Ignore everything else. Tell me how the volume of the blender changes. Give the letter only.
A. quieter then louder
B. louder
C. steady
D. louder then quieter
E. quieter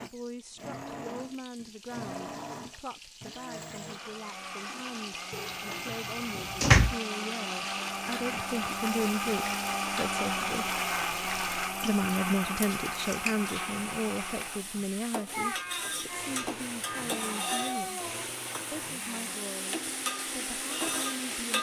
D.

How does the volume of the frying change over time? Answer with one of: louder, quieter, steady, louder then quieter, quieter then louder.
louder.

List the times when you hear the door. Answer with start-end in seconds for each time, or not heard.
5.3-7.0.